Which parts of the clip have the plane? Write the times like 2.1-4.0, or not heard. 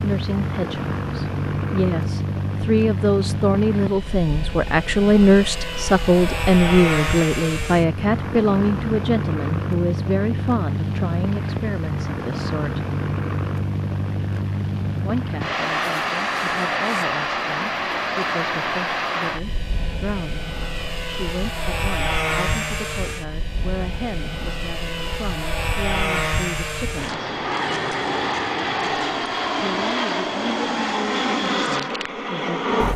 0.0-32.9.